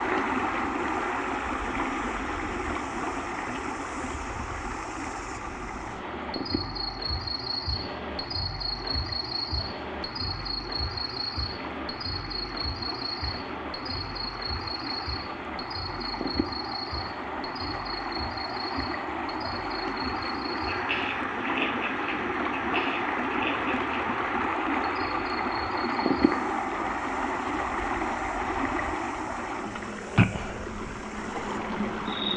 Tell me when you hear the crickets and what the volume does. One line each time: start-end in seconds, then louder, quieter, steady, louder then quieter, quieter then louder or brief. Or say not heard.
0.0-32.3 louder then quieter.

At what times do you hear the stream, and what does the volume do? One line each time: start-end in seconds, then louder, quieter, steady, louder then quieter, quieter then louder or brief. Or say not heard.
0.0-32.3 quieter then louder.